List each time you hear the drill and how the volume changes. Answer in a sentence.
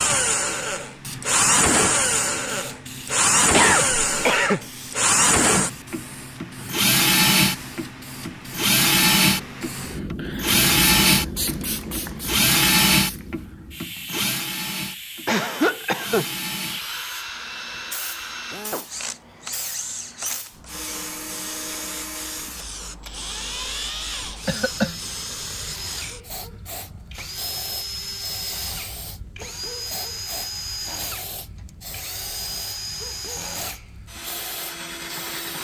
You can hear the drill from 0.0 to 35.5 s, getting quieter.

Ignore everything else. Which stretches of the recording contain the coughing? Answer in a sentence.
The coughing can be heard from 3.5 to 4.6 s, from 15.2 to 16.2 s and from 24.4 to 24.9 s.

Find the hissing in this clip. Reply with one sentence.
You can hear the hissing from 0.0 to 35.5 s.